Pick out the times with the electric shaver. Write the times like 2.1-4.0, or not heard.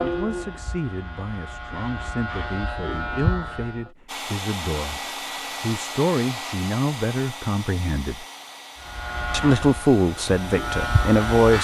0.0-3.9, 8.8-11.5.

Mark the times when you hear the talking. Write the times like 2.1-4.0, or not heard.
0.0-8.2, 9.3-11.5.